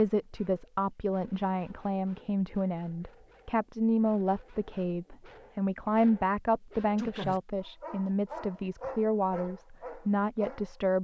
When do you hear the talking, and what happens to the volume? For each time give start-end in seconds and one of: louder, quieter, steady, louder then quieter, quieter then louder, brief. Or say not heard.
0.0-11.0 steady.